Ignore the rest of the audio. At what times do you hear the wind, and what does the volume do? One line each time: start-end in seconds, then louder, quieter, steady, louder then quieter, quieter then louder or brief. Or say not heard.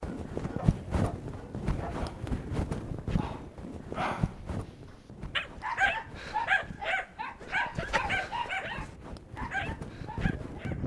0.0-10.8 quieter then louder.